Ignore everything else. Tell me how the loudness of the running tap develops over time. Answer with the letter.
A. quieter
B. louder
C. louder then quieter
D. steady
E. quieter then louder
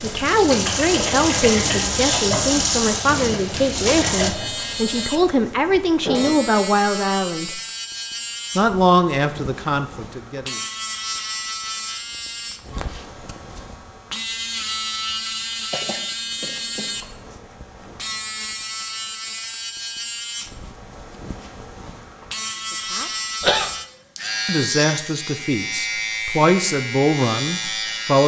A.